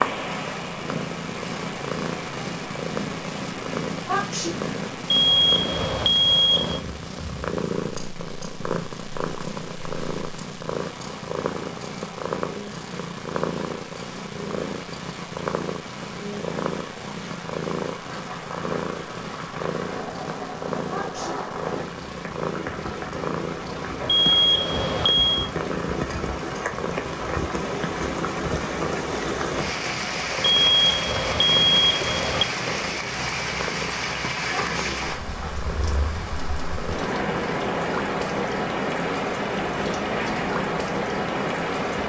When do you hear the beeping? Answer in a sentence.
You can hear the beeping from 5.1 to 6.8 s, from 24.1 to 25.5 s and from 30.4 to 32.5 s.